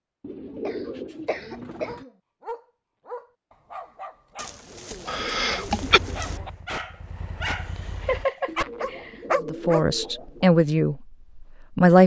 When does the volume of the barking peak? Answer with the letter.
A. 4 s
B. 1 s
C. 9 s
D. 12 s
C.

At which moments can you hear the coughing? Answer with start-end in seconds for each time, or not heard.
0.7-2.1, 5.0-6.0, 8.0-9.2.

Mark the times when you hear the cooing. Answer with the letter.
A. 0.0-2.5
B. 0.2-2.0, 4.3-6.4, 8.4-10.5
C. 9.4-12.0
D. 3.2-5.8
B.